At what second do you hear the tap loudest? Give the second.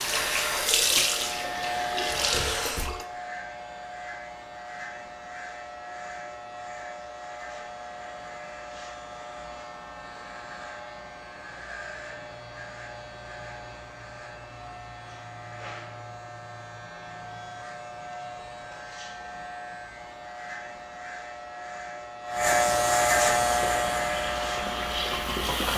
1 s.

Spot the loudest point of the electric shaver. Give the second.
23 s.